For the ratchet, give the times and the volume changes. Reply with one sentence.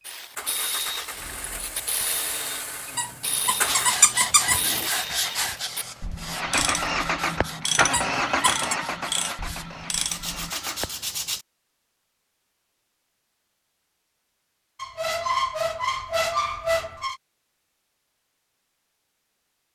You can hear the ratchet from 0.1 to 10.5 s, at a steady volume.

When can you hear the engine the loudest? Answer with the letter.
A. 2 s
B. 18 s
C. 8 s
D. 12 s
C.